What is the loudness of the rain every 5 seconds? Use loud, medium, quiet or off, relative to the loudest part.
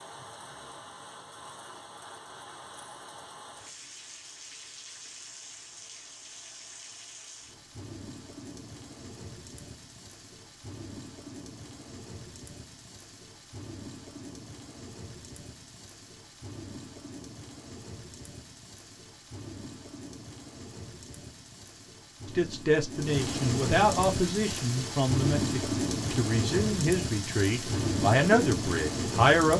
quiet, quiet, quiet, quiet, medium, loud.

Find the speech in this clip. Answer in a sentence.
You can hear the speech from 22.4 to 29.5 s.